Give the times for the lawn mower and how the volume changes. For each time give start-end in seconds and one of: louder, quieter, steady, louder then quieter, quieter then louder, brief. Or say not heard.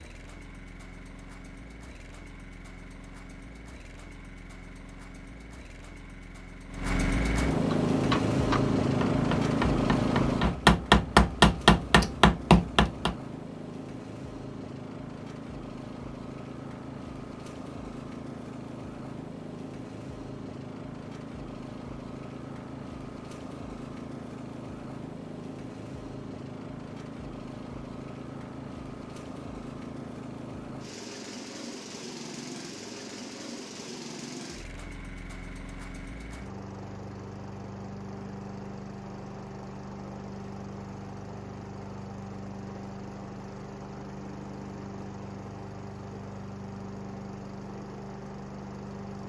0.0-49.2 quieter.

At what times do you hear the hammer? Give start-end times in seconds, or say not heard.
7.7-13.2.